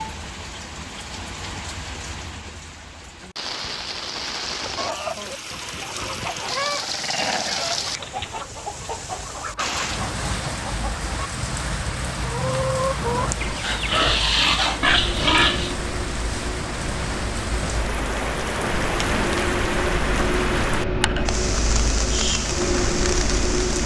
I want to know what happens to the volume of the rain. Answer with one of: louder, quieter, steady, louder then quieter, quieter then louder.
louder.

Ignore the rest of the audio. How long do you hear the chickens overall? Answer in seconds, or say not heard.
9 s.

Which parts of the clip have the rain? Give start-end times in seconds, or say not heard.
0.0-23.8.